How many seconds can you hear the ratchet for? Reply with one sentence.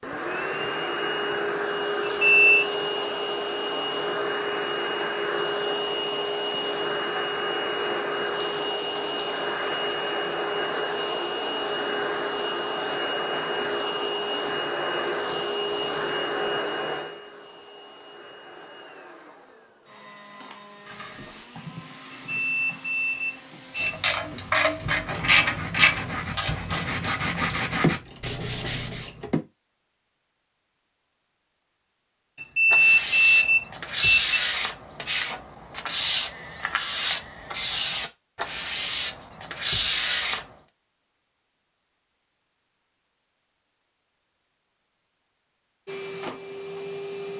The ratchet can be heard for 6 seconds in total.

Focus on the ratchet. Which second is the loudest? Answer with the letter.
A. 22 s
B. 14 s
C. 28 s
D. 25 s
D.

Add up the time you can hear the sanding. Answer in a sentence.
You can hear the sanding for 16 seconds altogether.